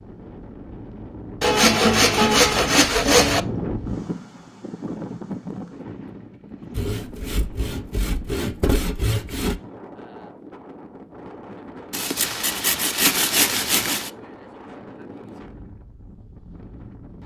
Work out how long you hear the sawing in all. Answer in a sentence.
The sawing can be heard for 7 seconds in total.